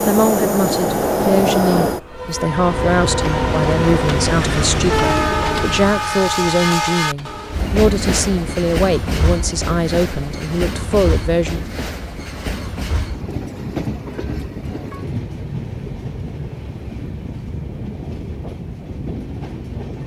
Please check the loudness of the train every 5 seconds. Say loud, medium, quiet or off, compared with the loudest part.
loud, loud, medium, medium.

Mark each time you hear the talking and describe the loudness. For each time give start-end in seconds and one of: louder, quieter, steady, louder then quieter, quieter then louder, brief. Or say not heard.
0.1-11.7 steady.